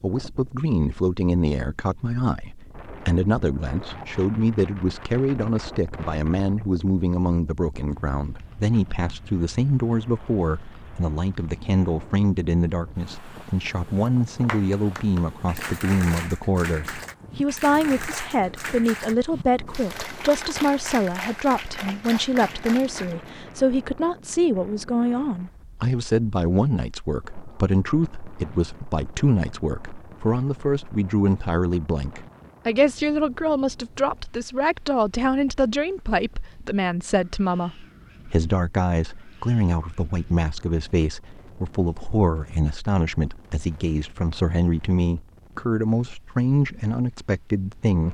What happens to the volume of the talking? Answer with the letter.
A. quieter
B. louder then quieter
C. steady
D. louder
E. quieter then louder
C.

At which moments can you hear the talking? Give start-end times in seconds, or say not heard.
0.0-48.0.